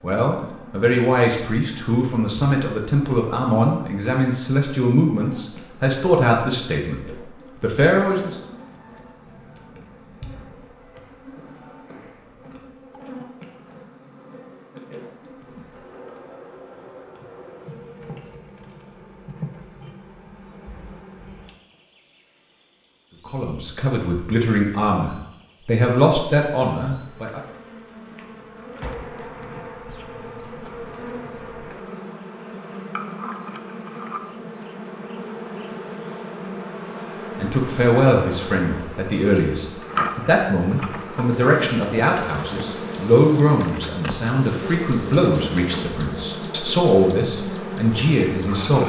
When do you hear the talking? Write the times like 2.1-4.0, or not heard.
0.0-8.4, 23.2-27.4, 37.4-48.8.